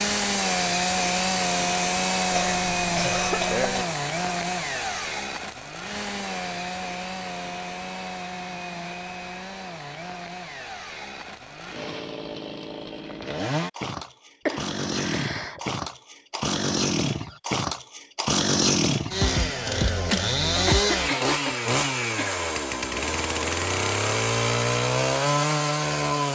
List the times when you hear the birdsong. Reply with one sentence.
The birdsong can't be heard in this clip.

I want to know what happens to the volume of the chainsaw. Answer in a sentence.
The loudness of the chainsaw goes down, then up.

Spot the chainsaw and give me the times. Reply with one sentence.
You can hear the chainsaw from 0.0 to 26.2 s.